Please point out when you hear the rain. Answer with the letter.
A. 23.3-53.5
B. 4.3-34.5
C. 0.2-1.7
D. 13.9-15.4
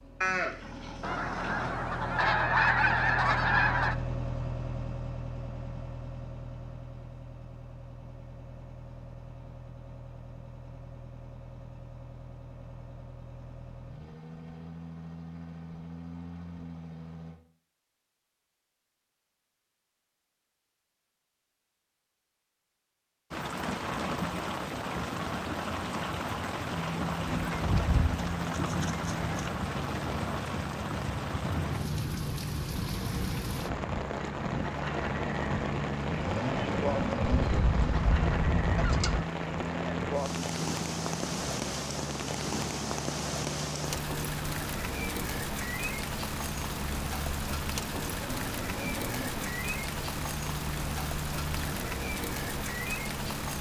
A.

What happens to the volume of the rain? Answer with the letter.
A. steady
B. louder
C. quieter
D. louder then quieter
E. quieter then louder
A.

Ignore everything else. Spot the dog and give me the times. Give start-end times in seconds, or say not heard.
not heard.